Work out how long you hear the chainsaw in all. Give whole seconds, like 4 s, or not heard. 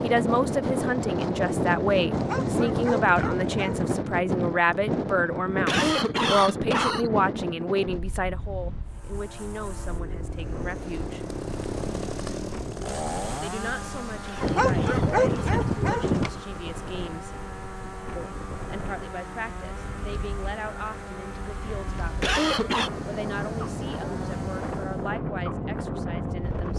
16 s.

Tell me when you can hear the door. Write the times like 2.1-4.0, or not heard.
not heard.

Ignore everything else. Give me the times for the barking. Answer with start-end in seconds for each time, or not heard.
2.1-3.9, 14.4-16.3.